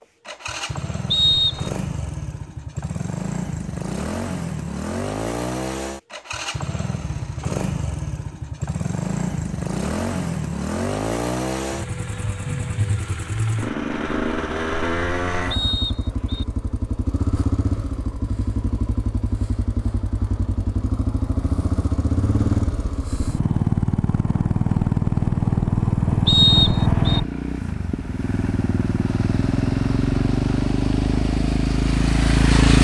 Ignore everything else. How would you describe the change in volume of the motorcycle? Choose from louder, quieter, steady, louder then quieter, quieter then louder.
louder.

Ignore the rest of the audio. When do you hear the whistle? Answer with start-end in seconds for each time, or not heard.
1.1-1.8, 15.5-16.4, 26.2-27.2.